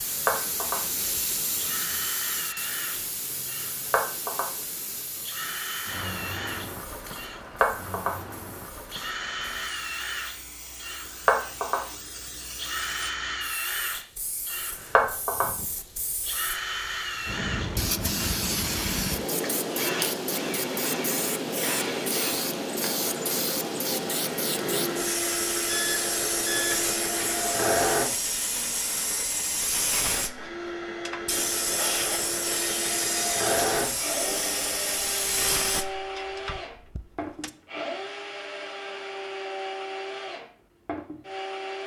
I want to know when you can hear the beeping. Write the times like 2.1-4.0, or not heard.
25.6-26.8.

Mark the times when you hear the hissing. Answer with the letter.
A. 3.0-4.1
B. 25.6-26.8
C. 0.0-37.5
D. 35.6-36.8
C.